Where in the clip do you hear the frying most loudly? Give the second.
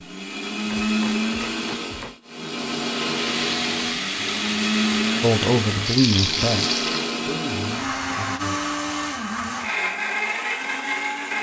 6 s.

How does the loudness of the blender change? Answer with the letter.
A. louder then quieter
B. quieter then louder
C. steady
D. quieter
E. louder
C.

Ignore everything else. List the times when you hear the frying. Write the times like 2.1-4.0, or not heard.
3.0-7.2.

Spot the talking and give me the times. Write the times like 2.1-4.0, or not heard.
5.2-8.6.